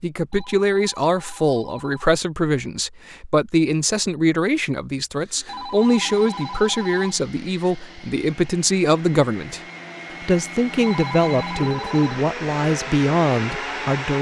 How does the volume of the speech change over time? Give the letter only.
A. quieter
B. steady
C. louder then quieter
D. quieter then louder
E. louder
B.